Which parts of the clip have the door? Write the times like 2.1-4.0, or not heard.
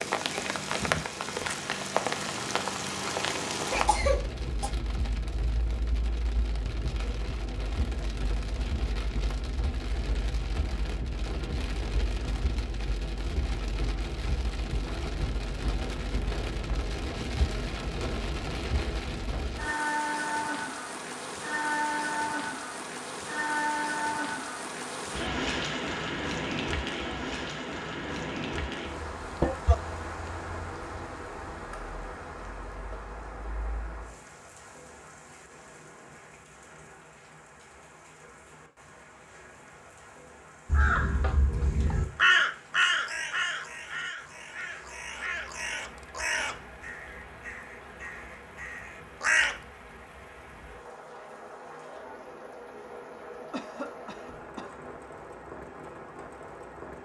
not heard.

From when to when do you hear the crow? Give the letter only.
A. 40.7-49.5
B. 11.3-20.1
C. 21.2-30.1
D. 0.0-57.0
A.